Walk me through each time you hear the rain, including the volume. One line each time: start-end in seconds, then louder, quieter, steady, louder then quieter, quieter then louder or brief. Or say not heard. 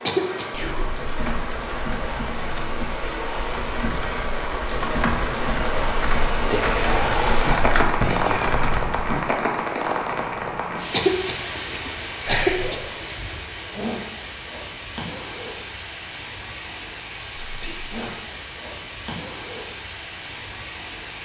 0.0-21.1 louder then quieter.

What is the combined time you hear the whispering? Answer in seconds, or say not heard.
4 s.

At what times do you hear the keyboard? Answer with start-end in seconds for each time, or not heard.
0.9-9.2.